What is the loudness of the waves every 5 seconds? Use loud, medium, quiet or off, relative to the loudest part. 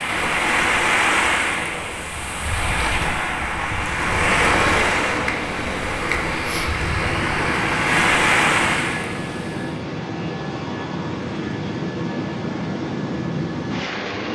loud, loud, off.